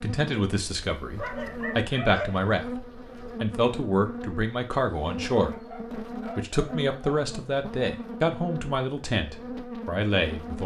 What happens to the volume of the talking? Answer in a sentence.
The loudness of the talking stays about the same.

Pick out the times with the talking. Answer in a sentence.
The talking can be heard from 0.0 to 5.5 s and from 6.3 to 10.6 s.